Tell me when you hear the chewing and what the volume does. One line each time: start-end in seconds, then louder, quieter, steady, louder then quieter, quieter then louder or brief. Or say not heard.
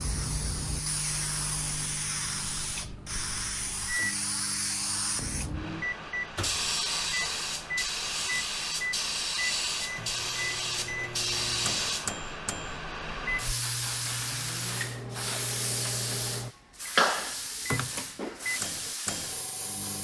not heard.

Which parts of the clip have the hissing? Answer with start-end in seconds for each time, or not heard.
0.0-19.9.